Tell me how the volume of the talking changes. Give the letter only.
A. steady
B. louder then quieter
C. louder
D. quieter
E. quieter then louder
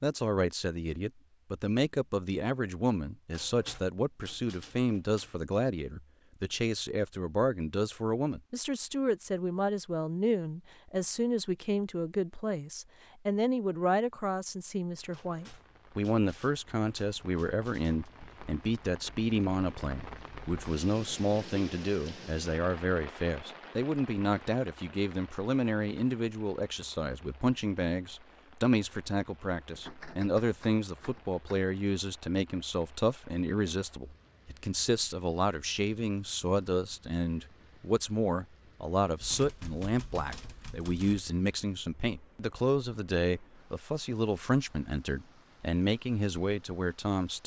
A.